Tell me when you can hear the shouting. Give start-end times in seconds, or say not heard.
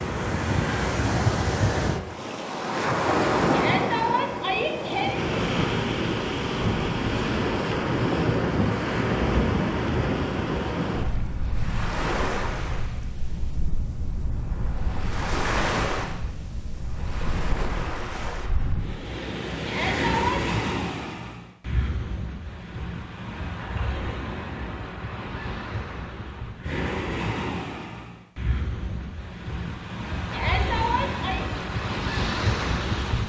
3.5-5.2, 19.6-20.4, 30.3-31.4.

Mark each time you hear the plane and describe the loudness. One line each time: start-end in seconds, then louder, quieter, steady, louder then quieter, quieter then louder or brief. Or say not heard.
not heard.